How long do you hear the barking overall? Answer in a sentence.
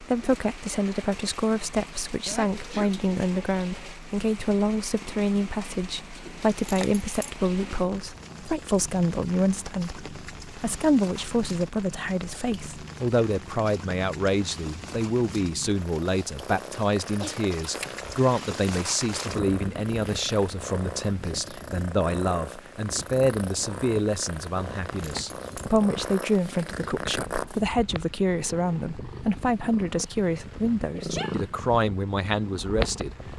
You can't hear the barking here.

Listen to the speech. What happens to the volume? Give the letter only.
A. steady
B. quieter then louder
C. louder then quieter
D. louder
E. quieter
A.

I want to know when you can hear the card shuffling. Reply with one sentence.
The card shuffling can't be heard in this clip.